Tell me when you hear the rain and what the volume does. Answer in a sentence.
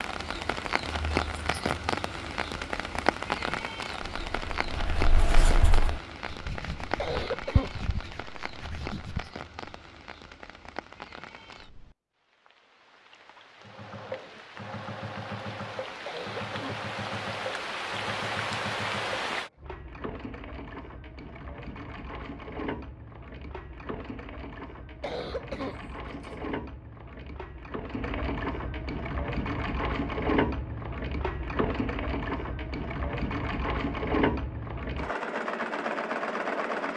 The rain can be heard from 0.0 to 19.5 s, getting quieter then louder.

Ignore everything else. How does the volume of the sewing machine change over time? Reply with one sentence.
The volume of the sewing machine goes up.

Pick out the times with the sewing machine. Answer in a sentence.
The sewing machine can be heard from 13.6 to 36.9 s.